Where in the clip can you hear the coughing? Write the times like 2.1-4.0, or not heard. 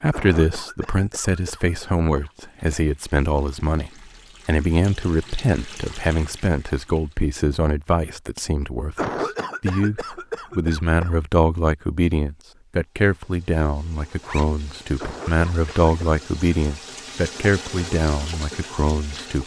0.1-2.3, 8.9-11.2, 14.9-16.2.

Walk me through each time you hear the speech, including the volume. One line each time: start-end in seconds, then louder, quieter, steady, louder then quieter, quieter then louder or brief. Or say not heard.
0.0-19.4 steady.